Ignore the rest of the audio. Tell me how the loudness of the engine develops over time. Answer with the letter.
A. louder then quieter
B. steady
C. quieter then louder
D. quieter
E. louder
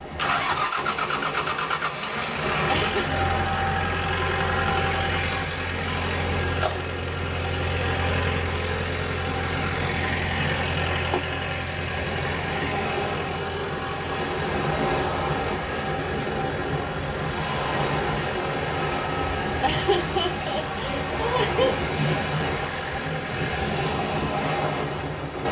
D.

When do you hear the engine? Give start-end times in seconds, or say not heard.
0.0-25.4.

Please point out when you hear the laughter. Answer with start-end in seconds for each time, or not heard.
2.6-3.1, 19.6-21.9.